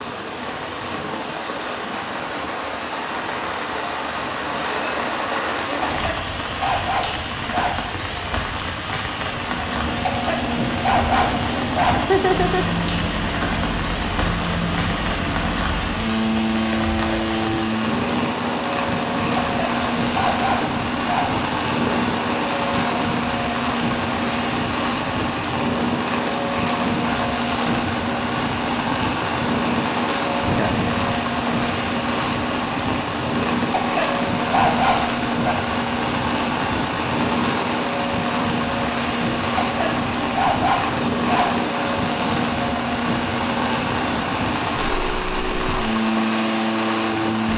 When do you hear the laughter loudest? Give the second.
12 s.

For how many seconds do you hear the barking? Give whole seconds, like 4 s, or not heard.
10 s.